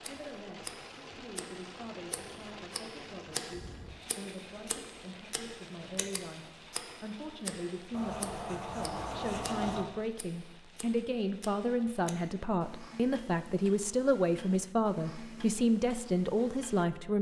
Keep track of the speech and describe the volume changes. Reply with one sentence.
The loudness of the speech goes up.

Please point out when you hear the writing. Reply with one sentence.
The writing can be heard from 7.9 to 9.9 s.